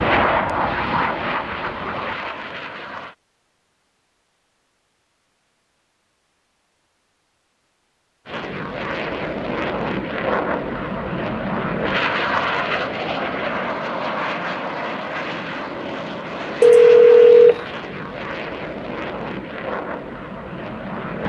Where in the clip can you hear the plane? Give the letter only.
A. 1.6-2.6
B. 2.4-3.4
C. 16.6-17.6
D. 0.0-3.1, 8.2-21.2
D.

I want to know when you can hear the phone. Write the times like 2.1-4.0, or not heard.
16.6-17.6.